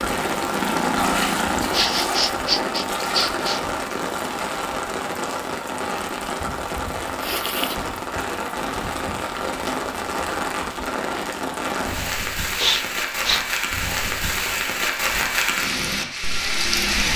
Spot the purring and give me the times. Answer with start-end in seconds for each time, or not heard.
0.0-1.8.